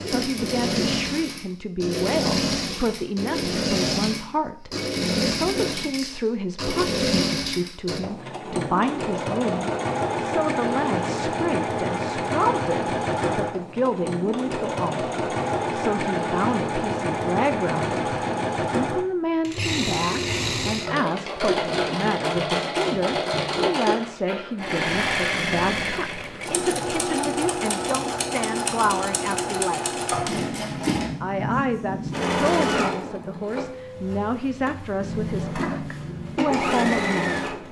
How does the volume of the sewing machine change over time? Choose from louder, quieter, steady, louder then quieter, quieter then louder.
steady.